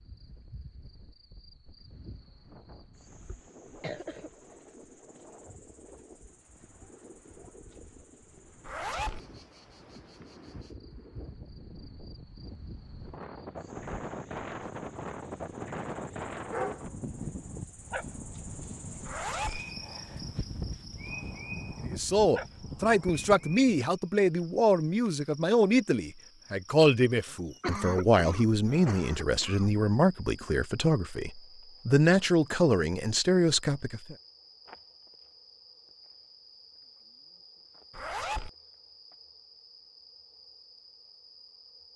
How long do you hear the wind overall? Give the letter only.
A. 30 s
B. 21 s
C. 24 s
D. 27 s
C.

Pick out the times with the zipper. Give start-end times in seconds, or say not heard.
8.7-9.2, 19.1-19.6, 37.9-38.5.